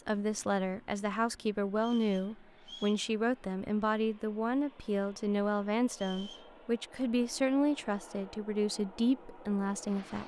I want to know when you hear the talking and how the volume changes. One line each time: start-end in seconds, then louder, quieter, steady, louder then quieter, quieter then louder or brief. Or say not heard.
0.1-10.2 steady.